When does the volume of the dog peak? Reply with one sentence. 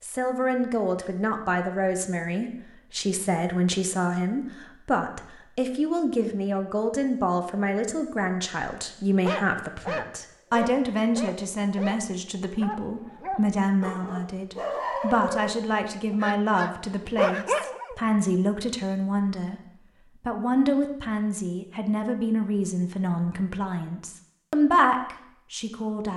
The volume of the dog peaks at 17 seconds.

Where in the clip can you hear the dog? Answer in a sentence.
You can hear the dog from 9.2 to 18.0 s.